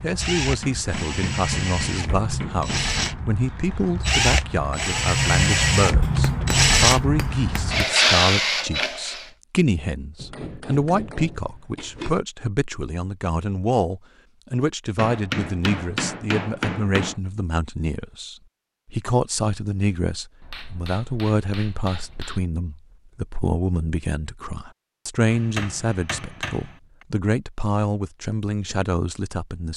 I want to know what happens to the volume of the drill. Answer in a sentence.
The volume of the drill goes up.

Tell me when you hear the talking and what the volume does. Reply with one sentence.
You can hear the talking from 0.0 to 29.7 s, at a steady volume.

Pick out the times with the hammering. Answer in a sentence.
You can hear the hammering from 0.4 to 3.3 s, from 6.0 to 8.0 s, from 10.2 to 12.2 s, from 14.9 to 17.1 s, from 20.4 to 22.4 s and from 25.3 to 27.1 s.